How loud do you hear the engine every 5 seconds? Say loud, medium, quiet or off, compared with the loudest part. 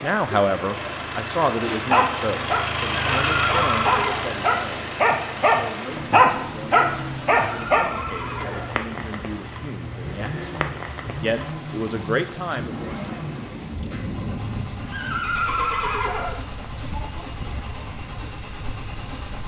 loud, medium, medium, medium.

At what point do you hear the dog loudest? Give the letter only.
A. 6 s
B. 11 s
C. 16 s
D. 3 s
A.